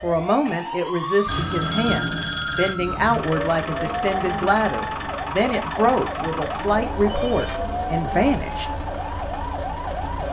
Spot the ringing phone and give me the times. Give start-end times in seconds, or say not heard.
1.2-2.8, 6.5-7.6.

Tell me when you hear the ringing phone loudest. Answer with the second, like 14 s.
2 s.